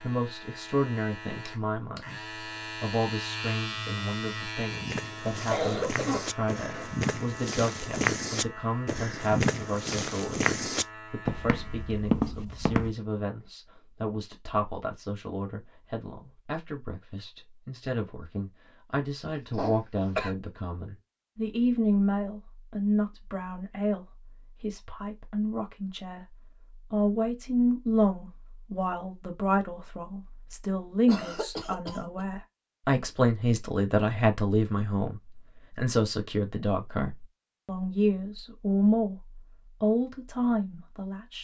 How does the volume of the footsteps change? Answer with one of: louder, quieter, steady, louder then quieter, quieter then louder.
louder.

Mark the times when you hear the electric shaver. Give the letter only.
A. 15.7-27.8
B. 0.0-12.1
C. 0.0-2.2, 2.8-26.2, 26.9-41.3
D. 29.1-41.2
B.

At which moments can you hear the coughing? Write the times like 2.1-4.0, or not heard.
5.5-7.0, 19.6-20.4, 31.1-32.2.